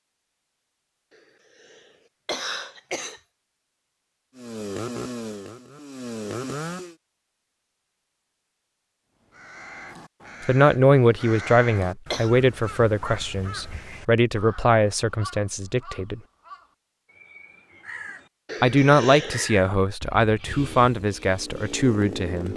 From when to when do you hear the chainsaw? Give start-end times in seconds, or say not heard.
4.3-7.0, 20.4-22.5.